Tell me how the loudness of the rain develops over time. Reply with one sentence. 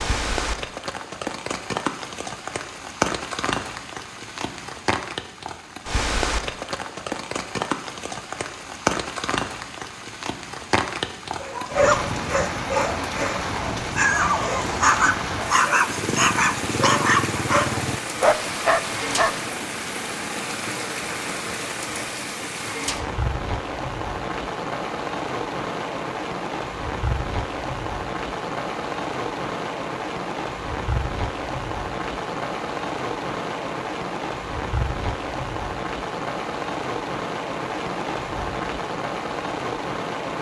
The volume of the rain stays about the same.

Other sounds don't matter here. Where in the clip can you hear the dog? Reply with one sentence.
The dog can be heard from 11.4 to 19.6 s.